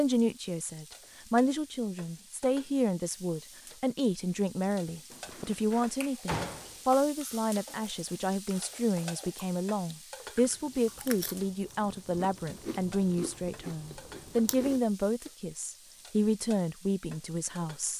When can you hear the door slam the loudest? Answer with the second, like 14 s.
6 s.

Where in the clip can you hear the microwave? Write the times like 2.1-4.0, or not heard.
not heard.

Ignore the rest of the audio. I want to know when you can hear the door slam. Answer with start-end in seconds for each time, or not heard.
5.1-6.8.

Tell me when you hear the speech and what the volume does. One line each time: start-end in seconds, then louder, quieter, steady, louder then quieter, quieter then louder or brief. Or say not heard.
0.0-17.9 steady.